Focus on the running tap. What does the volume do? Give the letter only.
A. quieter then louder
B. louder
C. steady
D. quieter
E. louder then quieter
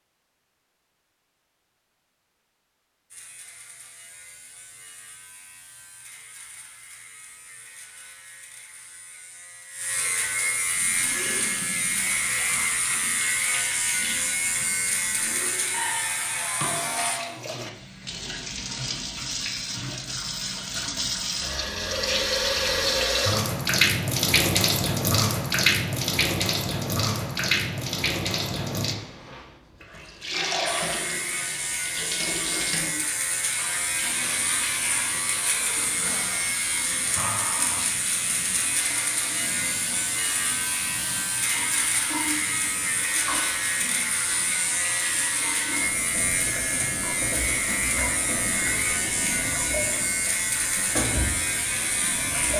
E.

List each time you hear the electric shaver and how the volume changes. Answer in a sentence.
You can hear the electric shaver from 3.1 to 17.2 s, getting louder; and from 30.7 to 52.5 s, at a steady volume.